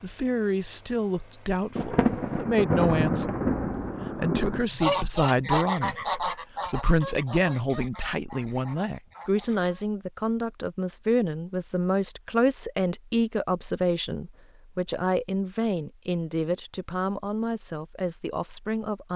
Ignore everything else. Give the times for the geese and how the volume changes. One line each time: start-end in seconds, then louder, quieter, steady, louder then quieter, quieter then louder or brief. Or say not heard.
4.7-9.8 quieter.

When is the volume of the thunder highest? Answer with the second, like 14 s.
3 s.